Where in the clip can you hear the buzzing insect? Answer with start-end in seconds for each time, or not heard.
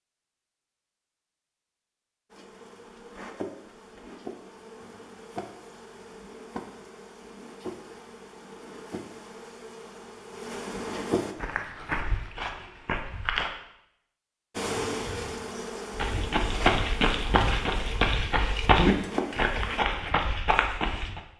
2.3-11.3, 14.6-19.8.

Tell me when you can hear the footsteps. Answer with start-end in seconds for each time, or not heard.
11.3-13.5, 15.9-21.2.